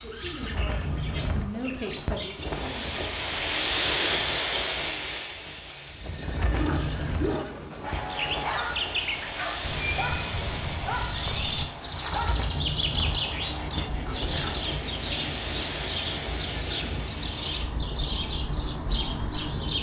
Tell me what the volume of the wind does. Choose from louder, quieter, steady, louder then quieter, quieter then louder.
quieter.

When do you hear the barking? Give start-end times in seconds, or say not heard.
6.5-14.7.